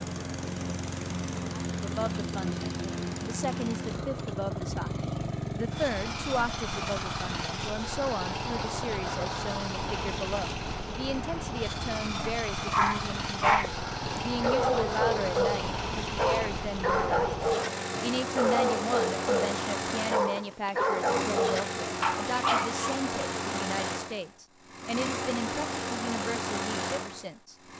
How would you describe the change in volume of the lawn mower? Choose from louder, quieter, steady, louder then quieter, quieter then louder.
steady.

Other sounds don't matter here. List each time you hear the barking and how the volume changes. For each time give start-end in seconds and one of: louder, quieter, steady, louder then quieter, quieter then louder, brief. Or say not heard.
12.7-23.0 steady.